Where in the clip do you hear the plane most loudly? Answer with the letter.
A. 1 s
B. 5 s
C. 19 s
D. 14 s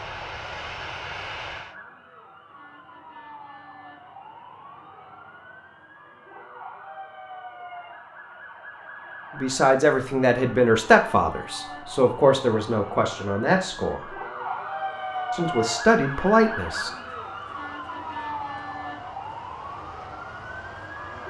A.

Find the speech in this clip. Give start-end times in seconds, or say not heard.
9.3-14.2, 15.3-16.9.